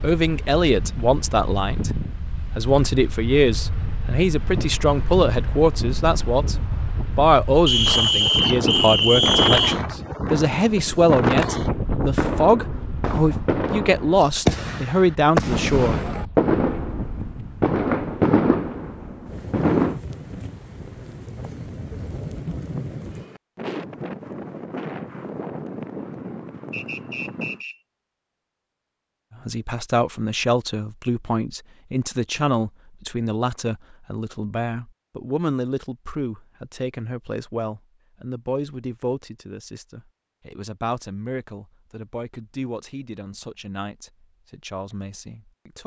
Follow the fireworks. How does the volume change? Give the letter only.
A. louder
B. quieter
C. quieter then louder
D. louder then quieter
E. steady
A.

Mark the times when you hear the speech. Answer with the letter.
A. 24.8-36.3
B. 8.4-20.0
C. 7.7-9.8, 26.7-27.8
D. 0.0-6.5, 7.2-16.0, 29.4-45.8
D.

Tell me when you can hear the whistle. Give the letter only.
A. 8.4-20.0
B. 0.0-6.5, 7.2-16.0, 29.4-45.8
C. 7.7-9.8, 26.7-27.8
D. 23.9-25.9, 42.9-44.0
C.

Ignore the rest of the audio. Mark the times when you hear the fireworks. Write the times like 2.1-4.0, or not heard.
8.4-20.0.